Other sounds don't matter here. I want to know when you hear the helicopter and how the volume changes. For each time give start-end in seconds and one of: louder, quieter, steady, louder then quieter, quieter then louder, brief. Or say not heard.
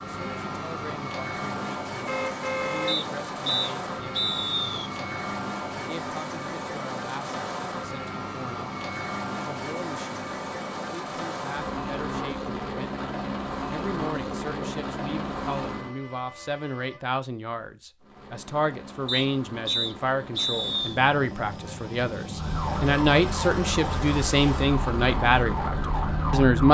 0.0-15.9 steady
18.0-26.5 louder.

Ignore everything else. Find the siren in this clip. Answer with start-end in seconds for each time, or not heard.
22.4-26.6.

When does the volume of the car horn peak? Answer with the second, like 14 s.
3 s.